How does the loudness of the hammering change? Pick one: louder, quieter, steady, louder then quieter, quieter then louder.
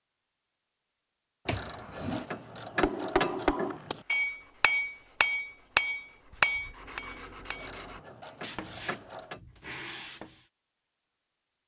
louder then quieter.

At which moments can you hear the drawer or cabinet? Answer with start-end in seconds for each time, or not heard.
1.4-2.3.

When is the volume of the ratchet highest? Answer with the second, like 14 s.
3 s.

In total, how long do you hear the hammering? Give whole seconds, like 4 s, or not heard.
5 s.